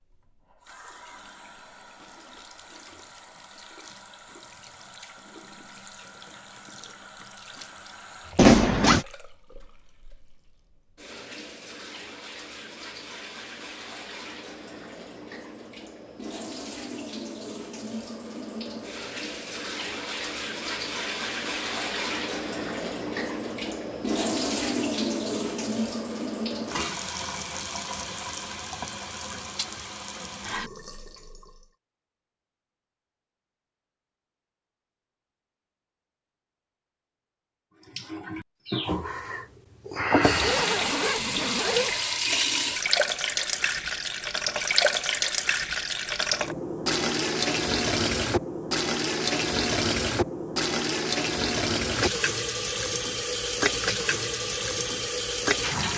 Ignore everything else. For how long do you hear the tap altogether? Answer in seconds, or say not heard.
50 s.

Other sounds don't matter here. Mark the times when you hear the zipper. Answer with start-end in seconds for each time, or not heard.
8.3-9.1, 40.4-42.0.